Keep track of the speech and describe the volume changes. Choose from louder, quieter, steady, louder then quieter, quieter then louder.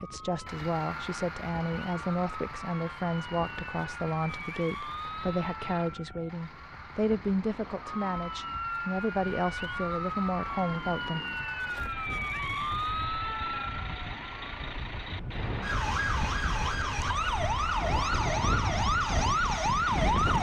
steady.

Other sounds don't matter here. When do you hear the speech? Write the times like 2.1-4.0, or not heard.
0.0-11.2.